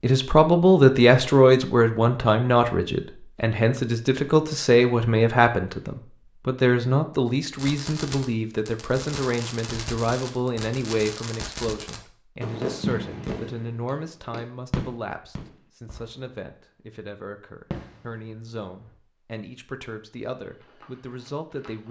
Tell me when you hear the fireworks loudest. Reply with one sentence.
The loudest moment of the fireworks is at 13 seconds.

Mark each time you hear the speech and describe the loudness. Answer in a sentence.
The speech can be heard from 0.0 to 21.8 s, getting quieter.